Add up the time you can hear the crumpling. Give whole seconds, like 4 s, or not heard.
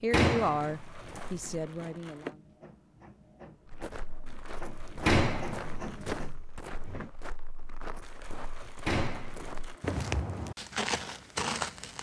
6 s.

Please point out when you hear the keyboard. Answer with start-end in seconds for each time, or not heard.
not heard.